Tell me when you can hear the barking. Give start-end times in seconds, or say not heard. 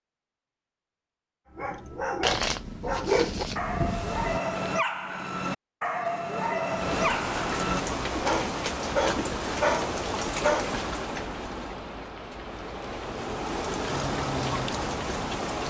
1.6-10.8.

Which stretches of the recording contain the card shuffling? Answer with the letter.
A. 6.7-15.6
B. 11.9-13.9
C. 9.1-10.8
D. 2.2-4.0
D.